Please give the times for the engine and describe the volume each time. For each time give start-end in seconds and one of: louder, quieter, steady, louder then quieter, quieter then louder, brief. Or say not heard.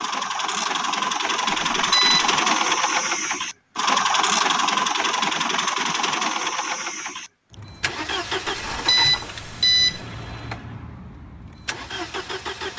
0.0-12.7 quieter.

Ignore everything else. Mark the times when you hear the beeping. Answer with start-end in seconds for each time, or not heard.
1.7-2.4, 8.4-10.0.